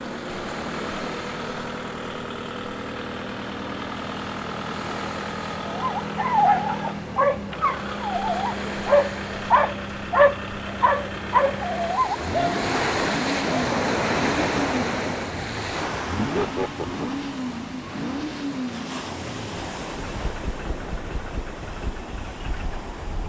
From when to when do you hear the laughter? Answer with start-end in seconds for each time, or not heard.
16.1-17.2.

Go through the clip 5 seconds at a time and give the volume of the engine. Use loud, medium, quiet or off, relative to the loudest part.
loud, loud, loud, loud, medium.